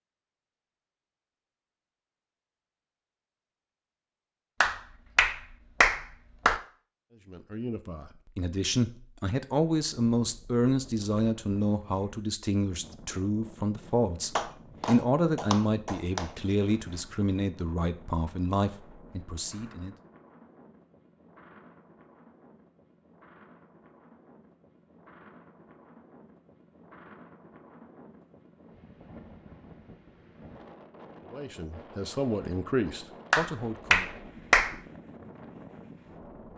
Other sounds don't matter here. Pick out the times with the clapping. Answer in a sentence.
The clapping can be heard from 4.6 to 6.6 s, from 14.3 to 16.2 s and from 33.3 to 34.8 s.